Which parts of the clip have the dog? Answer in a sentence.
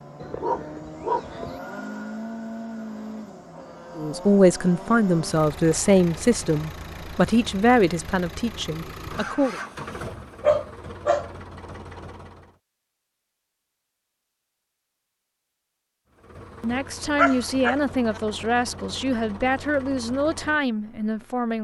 You can hear the dog from 0.2 to 1.6 s, from 10.4 to 11.3 s and from 17.1 to 18.2 s.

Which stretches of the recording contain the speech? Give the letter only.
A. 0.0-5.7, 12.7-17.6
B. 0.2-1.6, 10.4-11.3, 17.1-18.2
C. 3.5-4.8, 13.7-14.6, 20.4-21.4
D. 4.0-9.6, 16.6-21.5
D.